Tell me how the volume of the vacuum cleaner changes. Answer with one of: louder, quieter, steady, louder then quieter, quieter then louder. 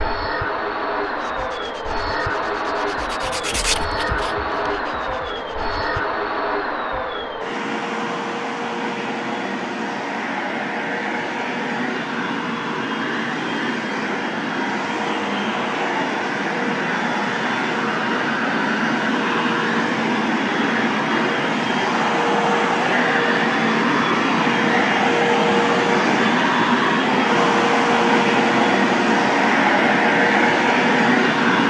louder.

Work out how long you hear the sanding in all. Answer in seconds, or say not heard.
5 s.